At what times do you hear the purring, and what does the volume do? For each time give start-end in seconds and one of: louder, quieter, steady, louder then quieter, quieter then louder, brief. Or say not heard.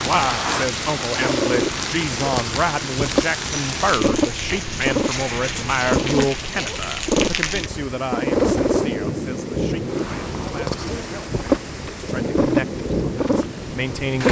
0.0-14.2 steady.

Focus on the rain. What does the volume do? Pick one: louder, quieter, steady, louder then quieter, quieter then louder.
steady.